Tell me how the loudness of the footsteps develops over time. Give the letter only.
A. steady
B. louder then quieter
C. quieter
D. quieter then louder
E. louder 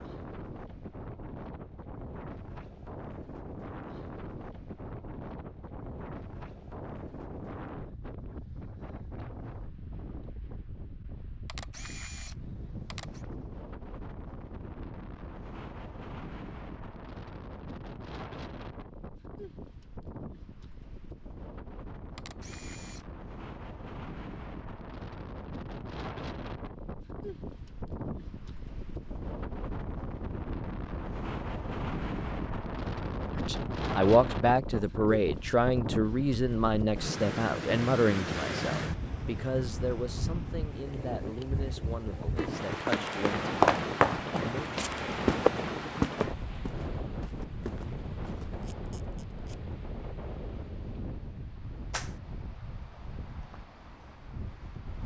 C.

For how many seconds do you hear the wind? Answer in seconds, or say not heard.
55 s.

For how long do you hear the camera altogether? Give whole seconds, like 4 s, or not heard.
4 s.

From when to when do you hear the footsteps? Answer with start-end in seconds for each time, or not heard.
42.4-48.7.